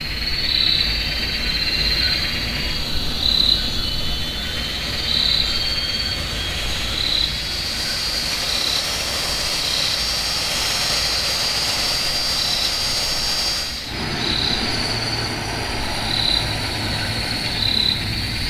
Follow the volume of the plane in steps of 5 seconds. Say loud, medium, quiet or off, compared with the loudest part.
medium, loud, loud, medium.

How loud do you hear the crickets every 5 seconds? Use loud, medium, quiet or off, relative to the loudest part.
loud, loud, medium, loud.